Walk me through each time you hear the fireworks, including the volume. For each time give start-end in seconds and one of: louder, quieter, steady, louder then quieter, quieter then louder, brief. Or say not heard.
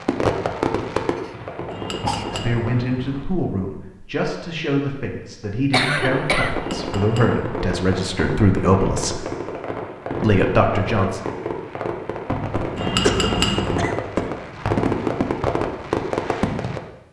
0.0-2.8 brief
6.0-16.8 louder.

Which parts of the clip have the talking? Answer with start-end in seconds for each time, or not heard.
2.3-9.2, 10.2-11.2.